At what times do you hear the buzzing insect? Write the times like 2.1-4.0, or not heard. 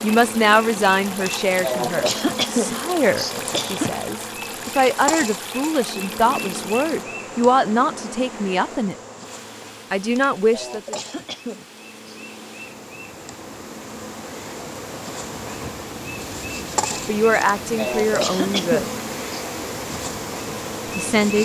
0.0-21.4.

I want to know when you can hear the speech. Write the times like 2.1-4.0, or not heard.
0.0-8.9, 9.9-10.9, 16.6-18.9, 20.9-21.4.